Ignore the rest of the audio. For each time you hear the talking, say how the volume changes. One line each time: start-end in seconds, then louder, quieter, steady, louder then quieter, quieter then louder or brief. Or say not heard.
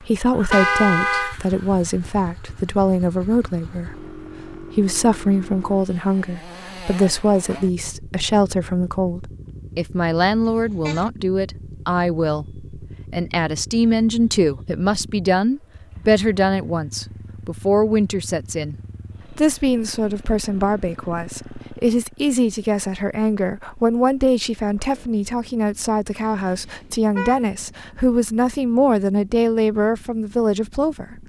0.0-31.2 steady.